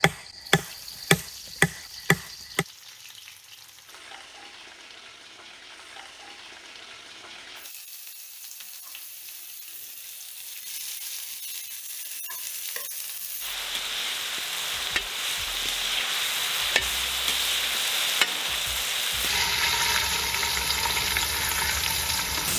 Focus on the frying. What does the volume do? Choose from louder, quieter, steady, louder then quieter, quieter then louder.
louder.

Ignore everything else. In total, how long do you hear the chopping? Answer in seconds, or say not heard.
3 s.